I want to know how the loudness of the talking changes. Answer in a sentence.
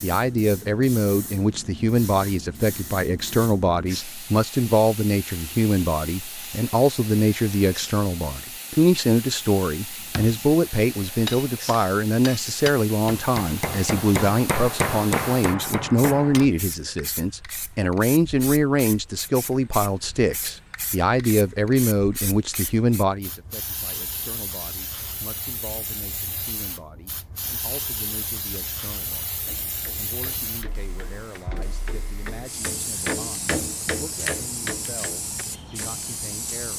The loudness of the talking goes down.